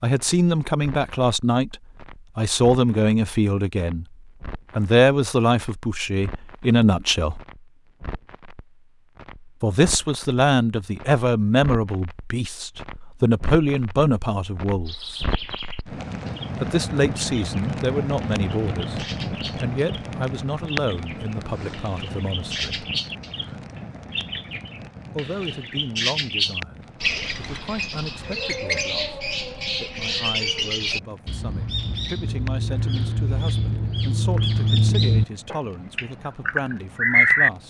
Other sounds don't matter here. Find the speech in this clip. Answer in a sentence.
The speech can be heard from 0.0 to 1.8 s, from 2.4 to 4.0 s, from 4.8 to 7.4 s, from 9.6 to 15.2 s, from 16.6 to 22.9 s and from 25.1 to 37.6 s.